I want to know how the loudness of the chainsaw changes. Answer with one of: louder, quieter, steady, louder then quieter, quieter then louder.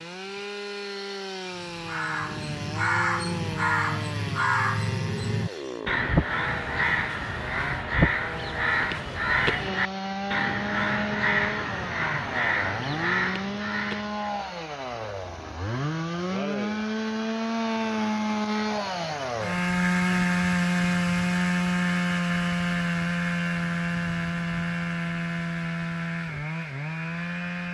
louder.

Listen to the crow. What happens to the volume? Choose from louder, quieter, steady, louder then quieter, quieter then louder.
steady.